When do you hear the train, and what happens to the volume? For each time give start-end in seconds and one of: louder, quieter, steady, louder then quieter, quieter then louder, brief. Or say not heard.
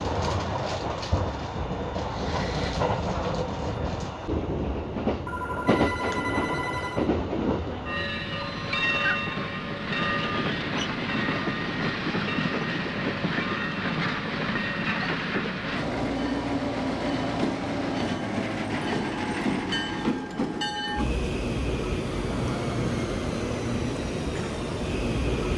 0.0-25.5 steady.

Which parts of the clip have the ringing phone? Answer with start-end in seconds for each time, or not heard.
5.2-7.1.